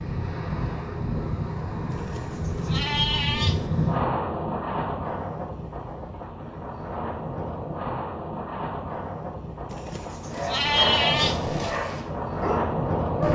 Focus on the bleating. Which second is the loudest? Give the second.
11 s.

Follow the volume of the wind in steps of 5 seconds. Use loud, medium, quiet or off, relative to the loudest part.
loud, medium, loud.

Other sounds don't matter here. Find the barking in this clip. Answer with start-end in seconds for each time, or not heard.
10.3-13.2.